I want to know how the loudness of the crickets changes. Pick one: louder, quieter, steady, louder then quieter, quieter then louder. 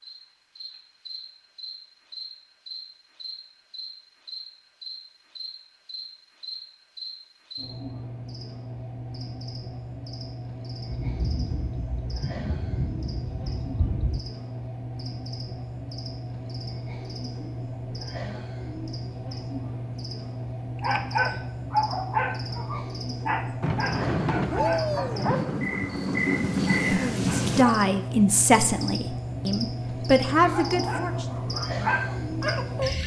louder.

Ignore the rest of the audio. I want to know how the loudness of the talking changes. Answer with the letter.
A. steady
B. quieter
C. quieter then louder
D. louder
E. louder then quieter
C.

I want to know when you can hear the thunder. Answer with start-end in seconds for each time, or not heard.
10.8-14.2, 23.6-27.6.